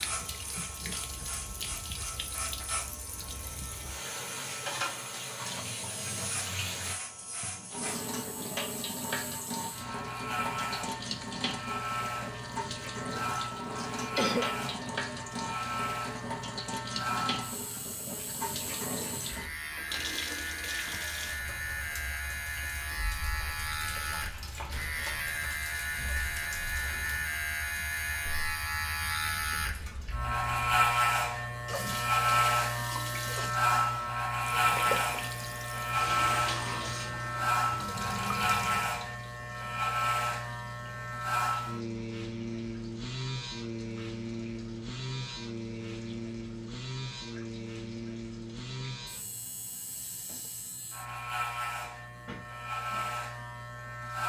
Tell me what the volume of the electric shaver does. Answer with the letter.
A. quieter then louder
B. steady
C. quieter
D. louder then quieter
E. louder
D.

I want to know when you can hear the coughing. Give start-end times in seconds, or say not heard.
14.2-14.8.